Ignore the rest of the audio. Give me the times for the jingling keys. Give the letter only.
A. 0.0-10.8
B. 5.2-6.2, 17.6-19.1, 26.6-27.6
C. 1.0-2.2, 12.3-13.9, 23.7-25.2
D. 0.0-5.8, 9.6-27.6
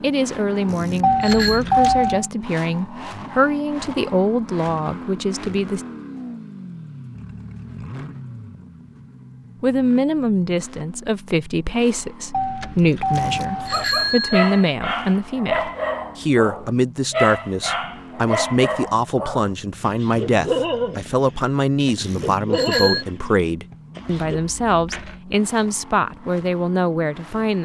C.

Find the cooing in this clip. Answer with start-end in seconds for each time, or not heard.
not heard.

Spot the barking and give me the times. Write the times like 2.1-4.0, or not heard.
13.6-24.4.